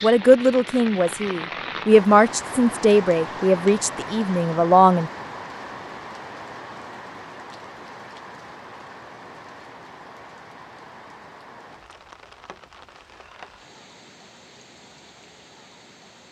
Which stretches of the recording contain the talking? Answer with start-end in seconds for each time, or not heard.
0.0-5.1.